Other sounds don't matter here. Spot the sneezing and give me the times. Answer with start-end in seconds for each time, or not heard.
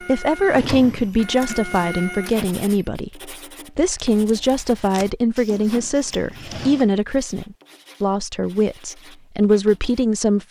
not heard.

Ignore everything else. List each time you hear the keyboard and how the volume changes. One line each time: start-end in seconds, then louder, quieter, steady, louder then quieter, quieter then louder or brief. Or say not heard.
not heard.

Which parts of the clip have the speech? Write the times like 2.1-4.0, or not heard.
0.1-10.4.